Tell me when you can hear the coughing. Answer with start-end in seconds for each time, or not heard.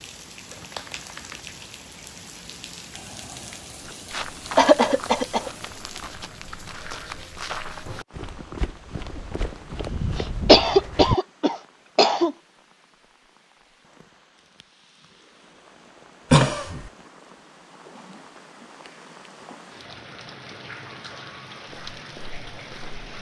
4.5-5.5, 10.2-12.3, 16.3-16.9.